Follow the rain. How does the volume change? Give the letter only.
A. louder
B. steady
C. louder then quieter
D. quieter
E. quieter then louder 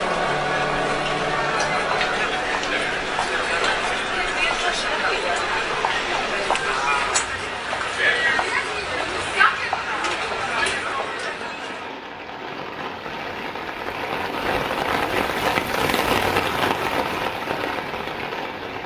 A.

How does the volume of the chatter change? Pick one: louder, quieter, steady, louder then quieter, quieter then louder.
steady.